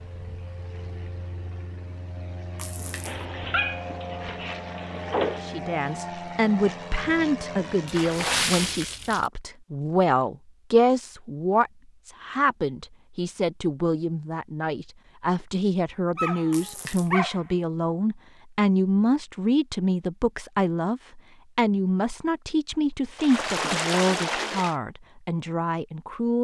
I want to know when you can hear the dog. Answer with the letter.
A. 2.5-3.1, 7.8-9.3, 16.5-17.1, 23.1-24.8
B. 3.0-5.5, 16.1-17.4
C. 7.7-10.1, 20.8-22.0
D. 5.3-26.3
B.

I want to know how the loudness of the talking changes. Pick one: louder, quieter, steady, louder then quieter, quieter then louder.
steady.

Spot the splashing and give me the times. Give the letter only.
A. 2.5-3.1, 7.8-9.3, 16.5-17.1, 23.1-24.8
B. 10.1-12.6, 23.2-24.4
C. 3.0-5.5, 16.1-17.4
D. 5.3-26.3
A.